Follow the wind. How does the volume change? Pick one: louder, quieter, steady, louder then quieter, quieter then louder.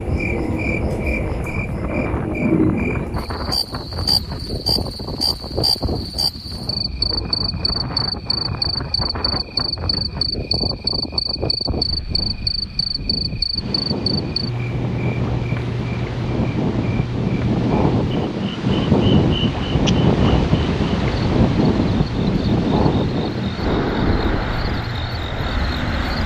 louder.